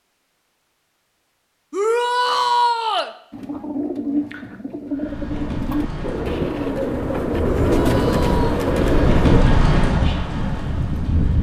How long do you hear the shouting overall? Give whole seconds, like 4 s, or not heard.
2 s.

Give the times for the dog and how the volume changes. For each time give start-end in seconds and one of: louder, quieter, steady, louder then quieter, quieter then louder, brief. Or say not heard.
not heard.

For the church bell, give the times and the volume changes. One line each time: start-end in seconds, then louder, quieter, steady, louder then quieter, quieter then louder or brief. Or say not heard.
not heard.